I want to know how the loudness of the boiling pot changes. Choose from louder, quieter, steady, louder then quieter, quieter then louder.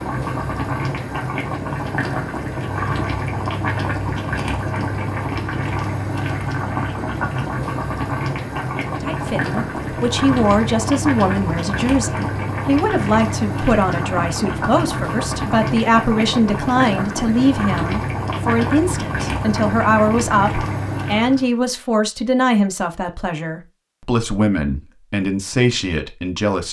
steady.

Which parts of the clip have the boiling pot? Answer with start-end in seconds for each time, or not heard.
0.0-21.4.